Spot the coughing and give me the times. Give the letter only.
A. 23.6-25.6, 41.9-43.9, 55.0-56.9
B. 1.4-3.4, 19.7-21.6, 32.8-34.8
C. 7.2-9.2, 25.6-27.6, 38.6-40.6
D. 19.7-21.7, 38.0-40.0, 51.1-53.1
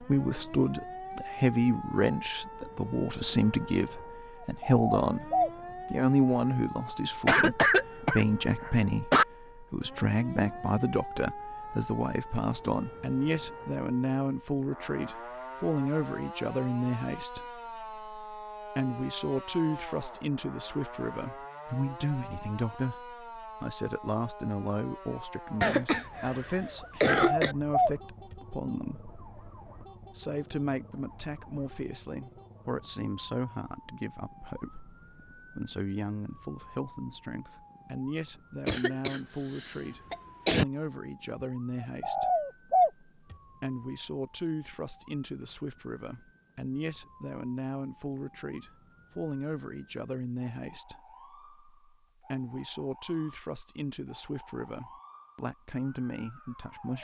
C.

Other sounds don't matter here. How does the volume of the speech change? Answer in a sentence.
The loudness of the speech goes down.